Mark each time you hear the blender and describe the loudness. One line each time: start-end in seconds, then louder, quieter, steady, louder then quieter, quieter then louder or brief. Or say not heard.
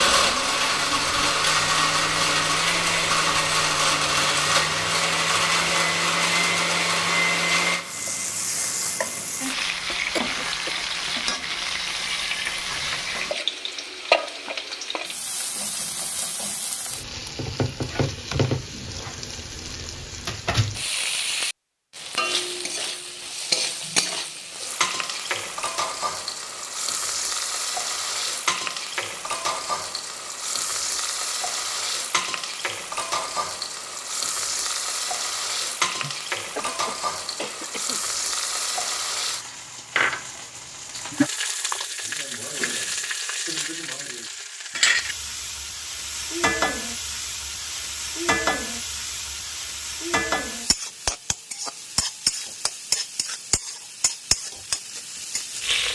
0.0-13.3 quieter.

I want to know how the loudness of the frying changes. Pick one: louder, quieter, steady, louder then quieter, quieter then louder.
steady.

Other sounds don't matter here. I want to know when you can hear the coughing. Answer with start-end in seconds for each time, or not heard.
9.8-10.7, 36.0-38.0.